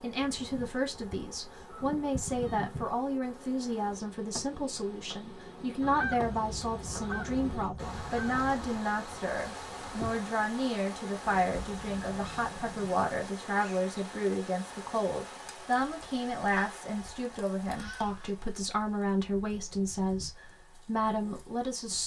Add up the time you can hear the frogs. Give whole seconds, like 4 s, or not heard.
not heard.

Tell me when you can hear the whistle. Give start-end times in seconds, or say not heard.
not heard.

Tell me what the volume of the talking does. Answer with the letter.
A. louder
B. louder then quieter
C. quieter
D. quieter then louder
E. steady
E.